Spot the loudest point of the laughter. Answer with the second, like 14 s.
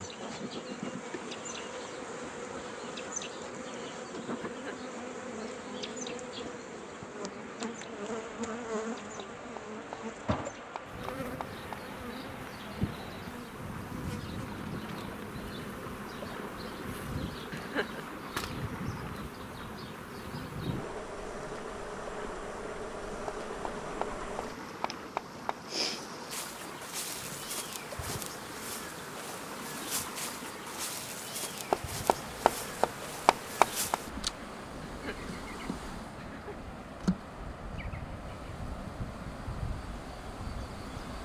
18 s.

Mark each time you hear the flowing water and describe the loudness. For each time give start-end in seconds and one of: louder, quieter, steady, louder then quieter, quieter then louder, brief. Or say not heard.
0.0-41.2 steady.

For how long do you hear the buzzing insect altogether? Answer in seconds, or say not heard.
41 s.